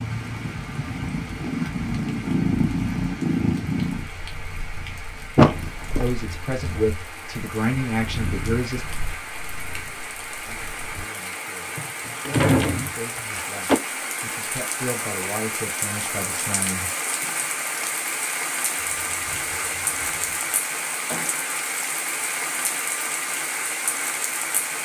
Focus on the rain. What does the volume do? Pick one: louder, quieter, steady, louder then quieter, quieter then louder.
louder.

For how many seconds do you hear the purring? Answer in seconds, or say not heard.
11 s.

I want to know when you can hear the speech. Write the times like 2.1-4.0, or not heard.
5.9-8.8, 10.4-16.9.